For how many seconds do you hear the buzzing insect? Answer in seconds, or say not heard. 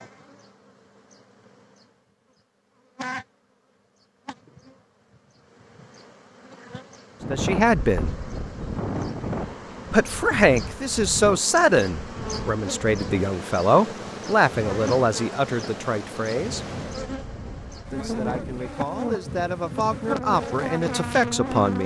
22 s.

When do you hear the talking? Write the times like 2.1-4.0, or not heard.
7.3-8.2, 9.9-16.6, 17.9-21.8.